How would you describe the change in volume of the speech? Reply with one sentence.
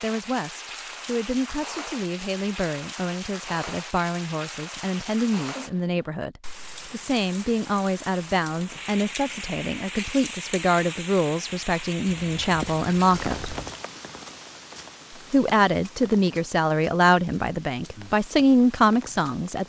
The loudness of the speech goes up.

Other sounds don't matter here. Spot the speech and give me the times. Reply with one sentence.
You can hear the speech from 0.0 to 13.6 s and from 15.3 to 19.6 s.